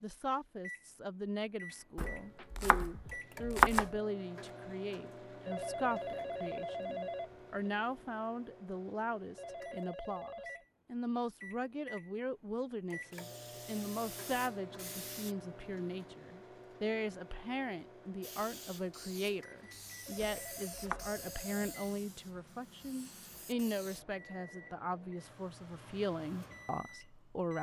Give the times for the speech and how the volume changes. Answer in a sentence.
You can hear the speech from 0.0 to 27.5 s, at a steady volume.